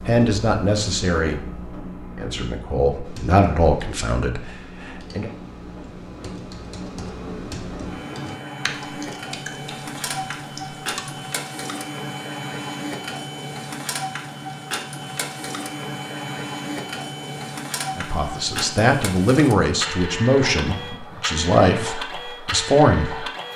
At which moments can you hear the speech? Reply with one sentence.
The speech can be heard from 0.1 to 5.3 s and from 17.9 to 23.2 s.